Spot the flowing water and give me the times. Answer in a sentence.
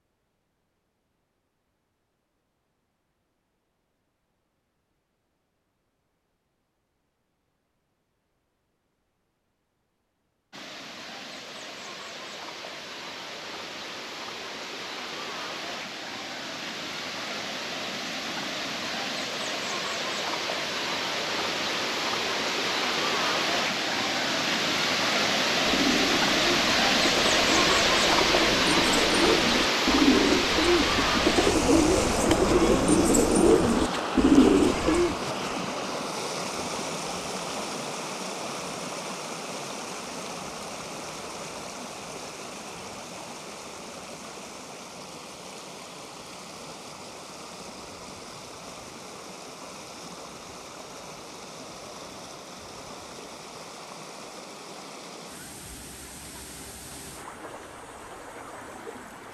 You can hear the flowing water from 10.5 to 59.2 s.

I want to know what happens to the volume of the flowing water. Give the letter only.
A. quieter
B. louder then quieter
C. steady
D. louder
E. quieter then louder
B.